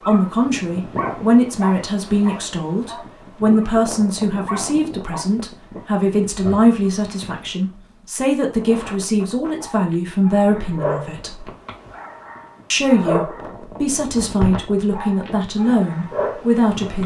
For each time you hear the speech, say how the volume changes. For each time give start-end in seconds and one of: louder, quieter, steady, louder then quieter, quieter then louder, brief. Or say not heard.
0.1-11.4 steady
12.7-17.0 louder.